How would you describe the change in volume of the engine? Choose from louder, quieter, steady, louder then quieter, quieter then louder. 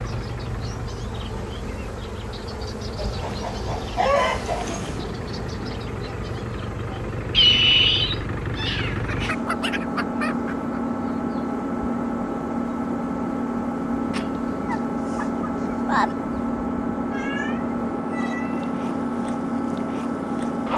louder.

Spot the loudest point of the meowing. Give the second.
8 s.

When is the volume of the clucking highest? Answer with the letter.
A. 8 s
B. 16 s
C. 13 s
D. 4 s
D.